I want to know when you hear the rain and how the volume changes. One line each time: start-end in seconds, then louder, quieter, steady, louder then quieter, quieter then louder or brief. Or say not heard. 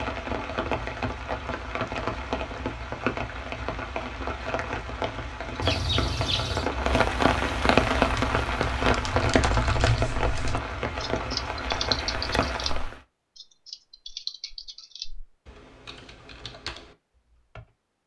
0.0-12.9 louder then quieter.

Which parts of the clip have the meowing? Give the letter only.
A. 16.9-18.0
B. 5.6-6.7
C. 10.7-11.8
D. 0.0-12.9
B.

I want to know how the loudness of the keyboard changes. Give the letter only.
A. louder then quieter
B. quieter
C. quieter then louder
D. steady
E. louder
B.